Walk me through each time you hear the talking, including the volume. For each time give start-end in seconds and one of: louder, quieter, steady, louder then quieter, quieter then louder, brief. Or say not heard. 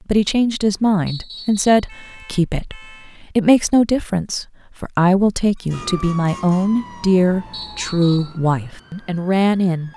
0.1-9.9 steady.